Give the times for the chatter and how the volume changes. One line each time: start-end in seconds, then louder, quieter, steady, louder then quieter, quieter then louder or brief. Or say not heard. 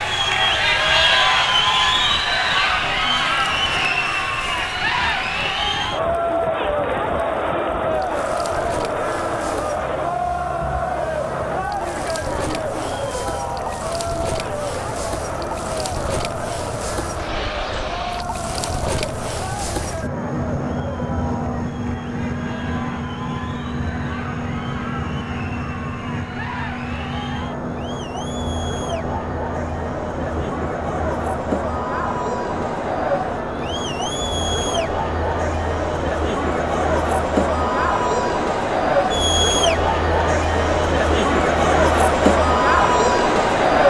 0.0-43.8 quieter then louder.